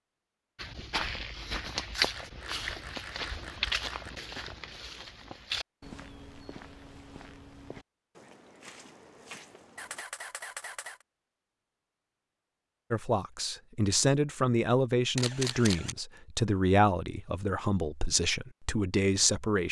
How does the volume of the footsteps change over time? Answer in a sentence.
The loudness of the footsteps goes down.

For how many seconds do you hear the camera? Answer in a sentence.
You can hear the camera for 4 seconds altogether.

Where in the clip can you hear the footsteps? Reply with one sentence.
The footsteps can be heard from 0.6 to 10.1 s.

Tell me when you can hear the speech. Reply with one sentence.
You can hear the speech from 12.9 to 19.6 s.